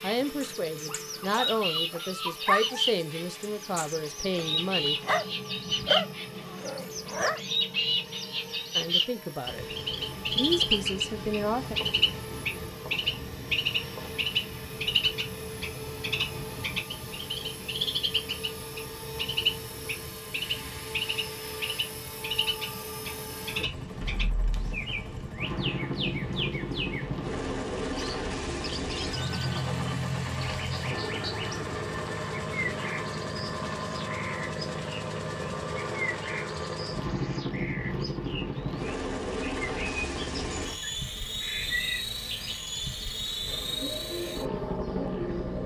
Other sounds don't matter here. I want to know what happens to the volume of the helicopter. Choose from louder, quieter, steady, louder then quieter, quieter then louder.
louder.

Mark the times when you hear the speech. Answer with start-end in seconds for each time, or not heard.
0.0-5.0, 8.8-9.7, 10.3-11.8.